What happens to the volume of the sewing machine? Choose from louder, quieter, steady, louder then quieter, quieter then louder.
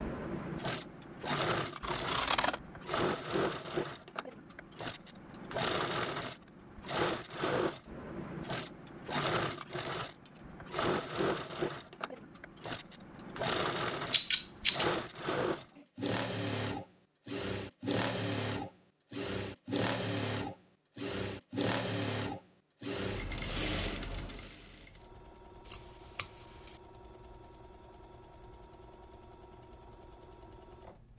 quieter.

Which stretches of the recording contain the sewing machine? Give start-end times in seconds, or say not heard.
0.0-31.1.